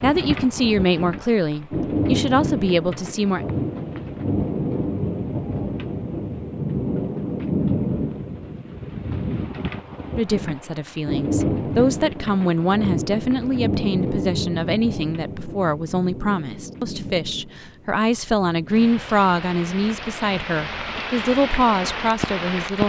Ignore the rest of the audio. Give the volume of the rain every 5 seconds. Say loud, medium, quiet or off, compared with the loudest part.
loud, loud, loud, medium, loud.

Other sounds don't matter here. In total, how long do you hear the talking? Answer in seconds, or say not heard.
16 s.